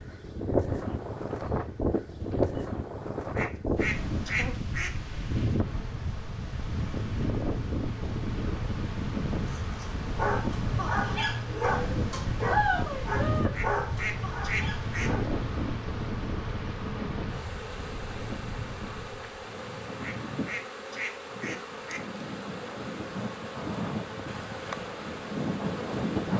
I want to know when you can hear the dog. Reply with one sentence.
The dog can be heard from 9.5 to 15.2 s.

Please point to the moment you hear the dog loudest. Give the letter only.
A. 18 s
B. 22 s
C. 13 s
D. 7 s
C.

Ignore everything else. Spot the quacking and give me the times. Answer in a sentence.
You can hear the quacking from 3.4 to 5.0 s, from 13.5 to 15.1 s and from 20.0 to 22.0 s.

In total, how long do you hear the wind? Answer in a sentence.
The wind can be heard for 26 seconds in total.